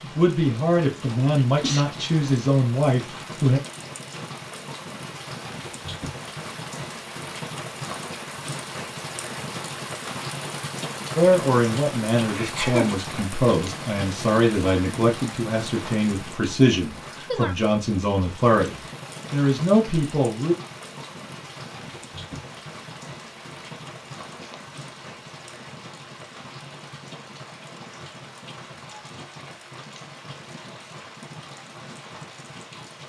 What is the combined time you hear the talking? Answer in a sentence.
The talking can be heard for 13 seconds in total.